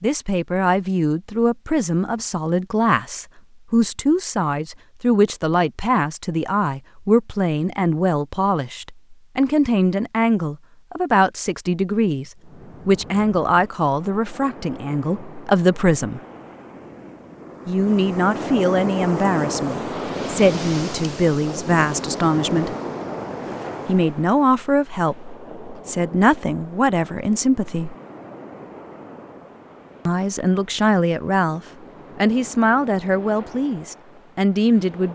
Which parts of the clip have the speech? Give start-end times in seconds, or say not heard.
0.0-16.2, 17.6-22.8, 23.9-27.9, 30.1-35.0.